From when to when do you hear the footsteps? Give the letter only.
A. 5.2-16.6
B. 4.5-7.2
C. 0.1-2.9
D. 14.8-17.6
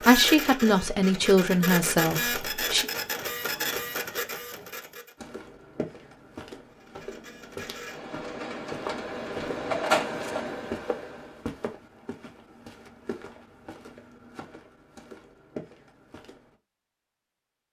A.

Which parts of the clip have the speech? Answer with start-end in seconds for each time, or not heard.
0.1-2.9.